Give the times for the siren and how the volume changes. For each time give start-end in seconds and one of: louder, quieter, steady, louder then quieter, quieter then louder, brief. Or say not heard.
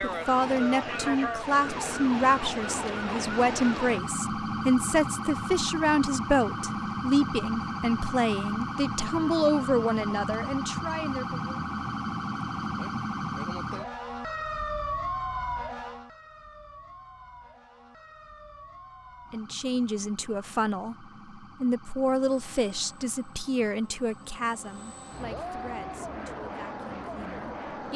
0.0-27.9 quieter.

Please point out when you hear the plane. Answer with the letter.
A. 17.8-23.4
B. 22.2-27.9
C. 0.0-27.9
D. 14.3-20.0
B.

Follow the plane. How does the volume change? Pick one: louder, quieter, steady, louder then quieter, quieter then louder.
louder.